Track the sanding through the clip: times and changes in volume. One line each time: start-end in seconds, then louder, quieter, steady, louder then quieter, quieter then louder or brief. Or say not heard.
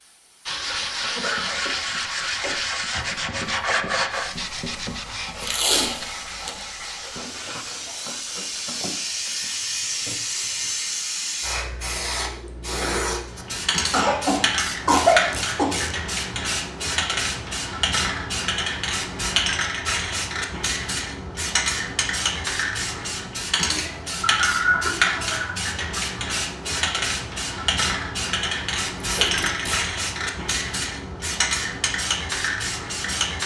0.5-10.8 quieter.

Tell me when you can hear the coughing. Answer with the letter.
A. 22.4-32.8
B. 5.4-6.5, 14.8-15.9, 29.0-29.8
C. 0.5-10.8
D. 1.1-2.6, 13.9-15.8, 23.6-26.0
D.